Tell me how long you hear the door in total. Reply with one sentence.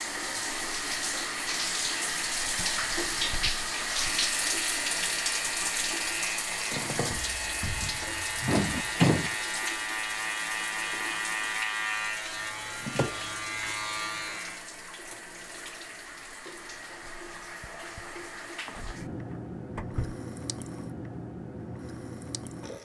The door can be heard for 2 seconds in total.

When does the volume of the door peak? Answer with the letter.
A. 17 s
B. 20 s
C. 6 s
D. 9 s
D.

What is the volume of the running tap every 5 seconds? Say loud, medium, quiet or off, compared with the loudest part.
loud, loud, medium, medium, medium.